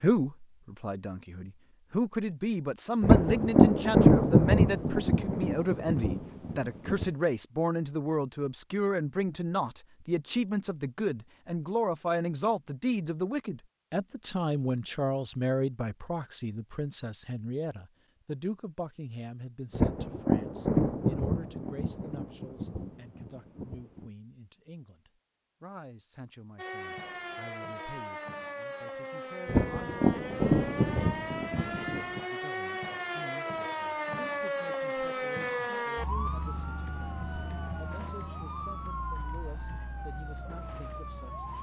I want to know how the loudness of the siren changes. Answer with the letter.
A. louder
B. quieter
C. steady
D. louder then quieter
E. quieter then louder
D.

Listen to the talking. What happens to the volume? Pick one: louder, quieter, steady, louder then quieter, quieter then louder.
quieter.